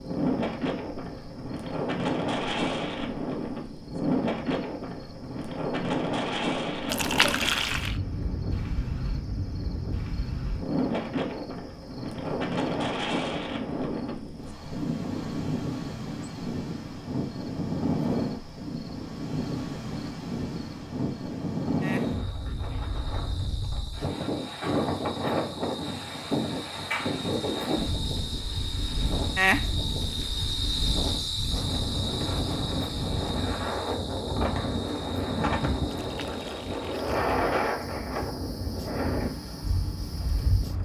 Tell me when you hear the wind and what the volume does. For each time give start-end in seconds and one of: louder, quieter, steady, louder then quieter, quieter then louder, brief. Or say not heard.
0.0-40.8 steady.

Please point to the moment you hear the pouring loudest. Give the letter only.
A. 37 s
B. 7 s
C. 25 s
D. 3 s
B.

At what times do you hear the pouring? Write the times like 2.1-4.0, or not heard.
6.8-8.0, 35.9-37.4.